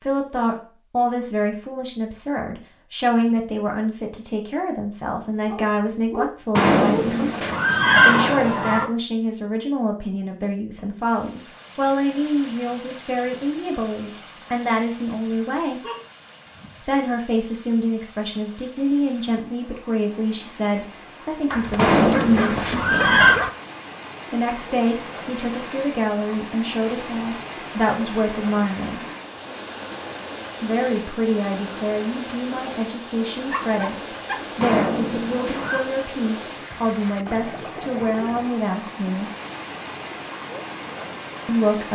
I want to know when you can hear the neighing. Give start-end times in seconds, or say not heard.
6.5-8.9, 21.8-23.4, 34.6-35.9.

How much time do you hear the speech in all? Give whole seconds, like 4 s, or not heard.
36 s.